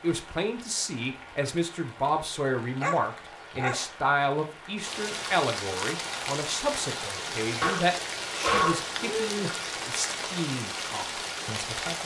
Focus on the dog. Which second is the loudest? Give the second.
9 s.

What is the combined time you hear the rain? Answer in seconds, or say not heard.
12 s.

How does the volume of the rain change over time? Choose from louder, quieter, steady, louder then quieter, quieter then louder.
louder.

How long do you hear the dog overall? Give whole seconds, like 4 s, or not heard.
3 s.